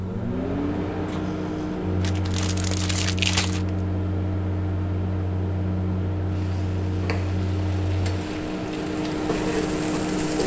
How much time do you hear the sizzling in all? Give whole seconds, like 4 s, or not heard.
4 s.